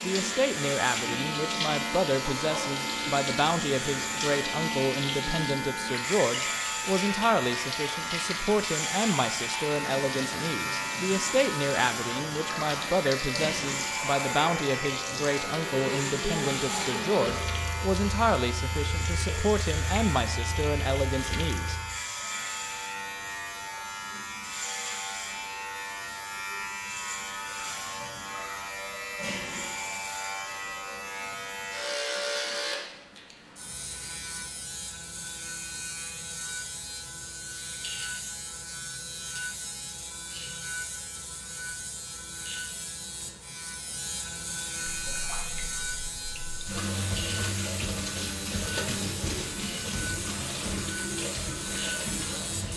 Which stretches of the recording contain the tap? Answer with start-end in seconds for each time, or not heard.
0.0-21.8, 45.0-52.7.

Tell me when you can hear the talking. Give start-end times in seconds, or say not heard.
0.0-21.8.